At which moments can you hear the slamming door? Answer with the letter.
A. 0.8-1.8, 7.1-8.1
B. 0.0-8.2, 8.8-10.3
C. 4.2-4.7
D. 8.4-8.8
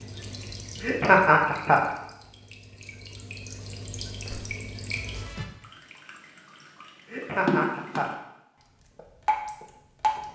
C.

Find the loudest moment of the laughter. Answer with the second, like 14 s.
1 s.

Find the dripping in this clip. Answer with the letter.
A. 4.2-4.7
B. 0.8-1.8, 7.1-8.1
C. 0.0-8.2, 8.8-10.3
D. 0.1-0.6
C.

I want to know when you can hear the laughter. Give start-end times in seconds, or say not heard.
0.8-1.8, 7.1-8.1.